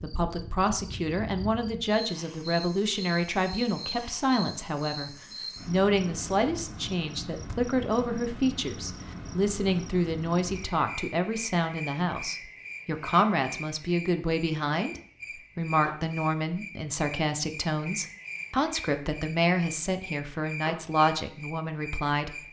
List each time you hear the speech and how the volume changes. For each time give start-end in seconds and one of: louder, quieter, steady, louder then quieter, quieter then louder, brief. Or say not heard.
0.0-22.4 steady.